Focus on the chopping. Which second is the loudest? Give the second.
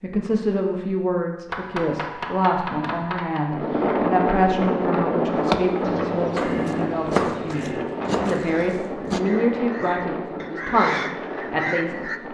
7 s.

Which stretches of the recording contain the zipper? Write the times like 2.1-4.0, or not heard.
not heard.